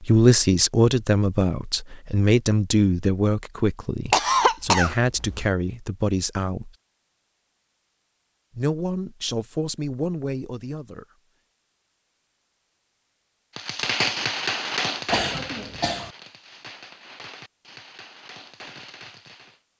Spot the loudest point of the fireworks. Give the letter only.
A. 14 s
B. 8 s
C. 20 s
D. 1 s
A.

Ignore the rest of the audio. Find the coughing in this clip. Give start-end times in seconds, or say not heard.
4.1-5.5, 15.1-16.1.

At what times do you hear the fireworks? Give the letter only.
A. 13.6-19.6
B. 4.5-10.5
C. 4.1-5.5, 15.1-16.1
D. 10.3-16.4
A.